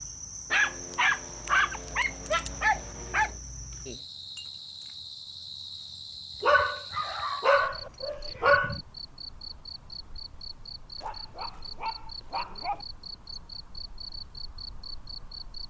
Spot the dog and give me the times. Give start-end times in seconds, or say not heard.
0.5-3.3, 6.4-8.8, 11.0-12.8.